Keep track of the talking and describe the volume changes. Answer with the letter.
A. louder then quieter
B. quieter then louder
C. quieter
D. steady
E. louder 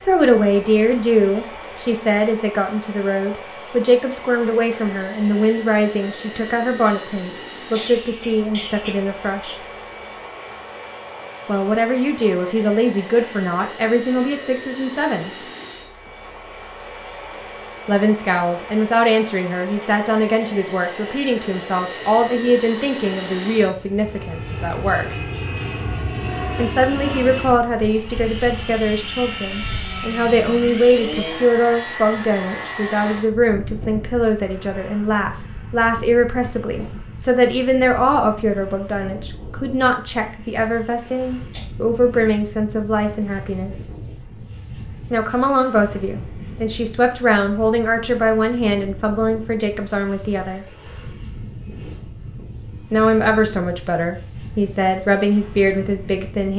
D.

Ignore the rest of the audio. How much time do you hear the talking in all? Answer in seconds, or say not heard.
47 s.